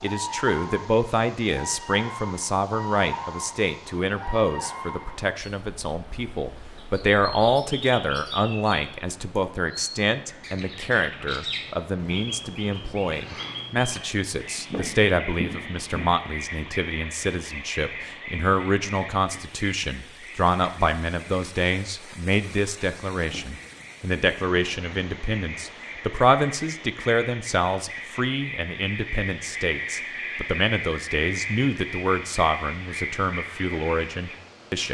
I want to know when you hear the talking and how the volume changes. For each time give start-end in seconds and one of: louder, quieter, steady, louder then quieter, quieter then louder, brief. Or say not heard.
0.0-34.8 steady.